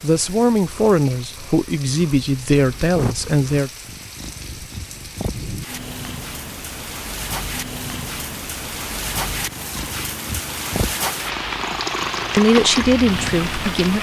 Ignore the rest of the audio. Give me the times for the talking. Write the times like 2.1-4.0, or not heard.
0.0-3.7, 12.3-13.9.